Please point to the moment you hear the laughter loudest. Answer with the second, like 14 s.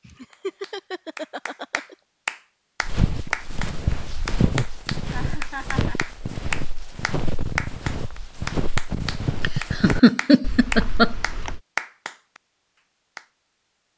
10 s.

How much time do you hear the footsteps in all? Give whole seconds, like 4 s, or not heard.
9 s.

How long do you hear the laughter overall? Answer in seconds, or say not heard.
5 s.